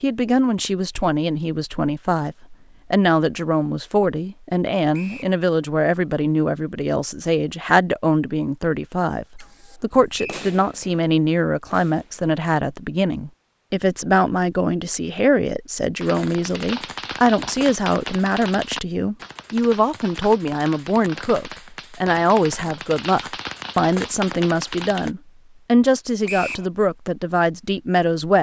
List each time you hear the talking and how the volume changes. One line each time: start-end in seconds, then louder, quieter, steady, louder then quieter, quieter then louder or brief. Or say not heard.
0.0-28.3 steady.